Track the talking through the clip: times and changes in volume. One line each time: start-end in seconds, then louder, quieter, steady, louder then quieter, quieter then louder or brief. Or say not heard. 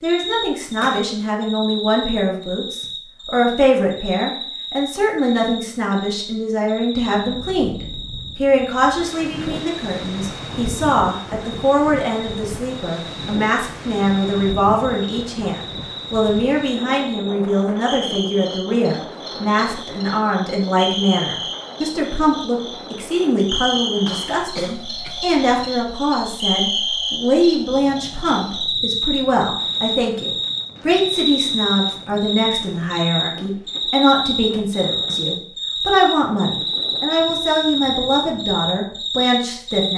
0.0-39.9 steady.